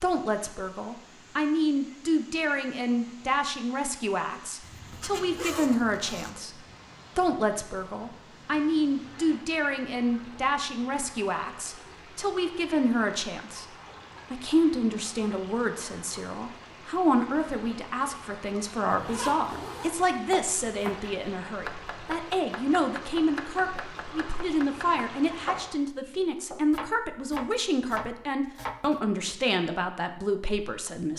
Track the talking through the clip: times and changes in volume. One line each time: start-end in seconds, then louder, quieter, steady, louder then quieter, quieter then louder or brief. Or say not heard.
0.0-13.7 steady
14.3-31.1 steady.